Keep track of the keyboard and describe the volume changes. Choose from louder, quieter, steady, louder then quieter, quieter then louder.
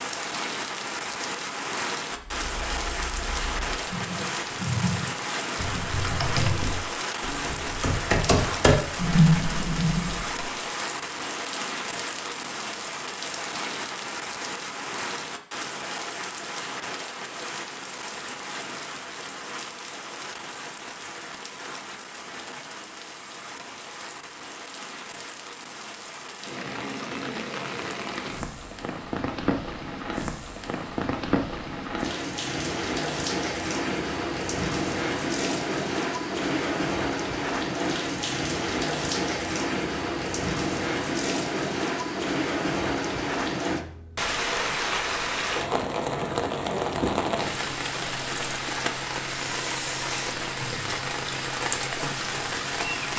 louder.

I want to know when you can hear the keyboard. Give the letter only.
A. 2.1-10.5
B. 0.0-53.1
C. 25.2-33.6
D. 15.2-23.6
A.